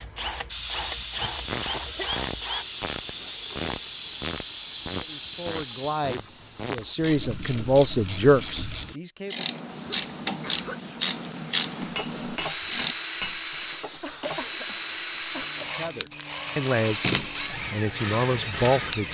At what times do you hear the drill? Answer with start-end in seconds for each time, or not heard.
0.0-2.6, 11.9-19.0.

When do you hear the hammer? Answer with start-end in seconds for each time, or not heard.
11.8-13.6.